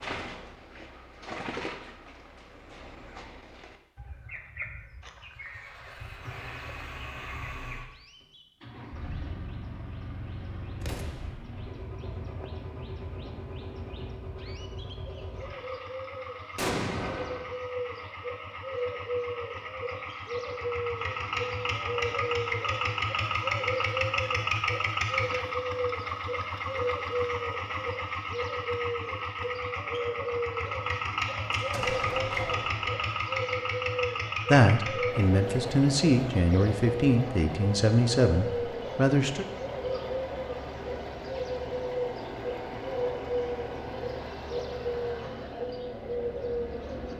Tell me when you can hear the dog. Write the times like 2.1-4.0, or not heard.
not heard.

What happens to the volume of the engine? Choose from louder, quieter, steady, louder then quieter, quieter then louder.
louder then quieter.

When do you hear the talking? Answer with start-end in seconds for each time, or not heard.
34.5-39.5.